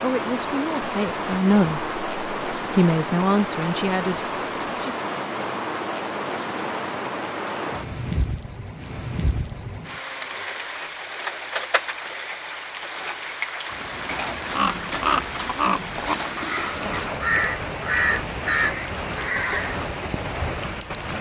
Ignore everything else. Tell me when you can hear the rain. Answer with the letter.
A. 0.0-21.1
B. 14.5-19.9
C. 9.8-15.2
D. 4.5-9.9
A.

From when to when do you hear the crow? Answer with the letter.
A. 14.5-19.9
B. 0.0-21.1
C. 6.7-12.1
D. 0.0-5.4
A.